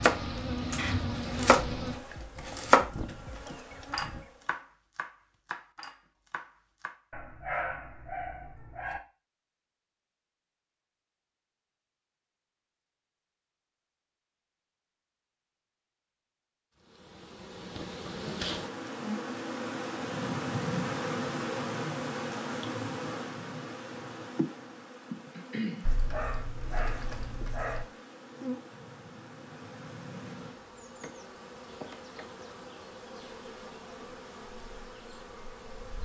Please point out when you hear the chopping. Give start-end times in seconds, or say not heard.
0.0-7.0.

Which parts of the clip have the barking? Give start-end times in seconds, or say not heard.
7.1-9.0, 25.8-27.9.